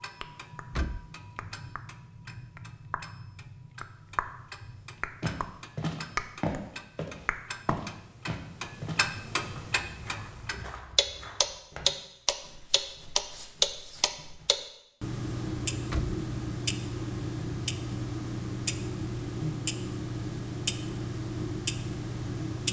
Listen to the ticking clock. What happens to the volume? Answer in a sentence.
The loudness of the ticking clock goes up.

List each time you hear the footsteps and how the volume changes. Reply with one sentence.
The footsteps can be heard from 5.2 to 14.7 s, getting quieter.